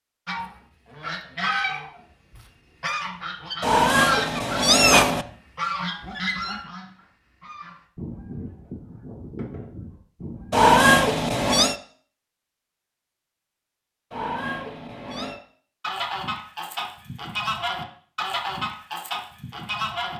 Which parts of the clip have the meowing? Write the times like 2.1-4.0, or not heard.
3.6-5.2, 10.5-11.8, 14.1-15.4.